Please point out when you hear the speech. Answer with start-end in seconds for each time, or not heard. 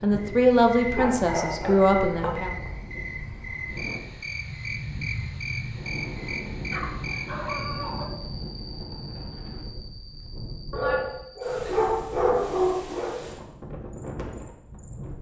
0.0-2.5.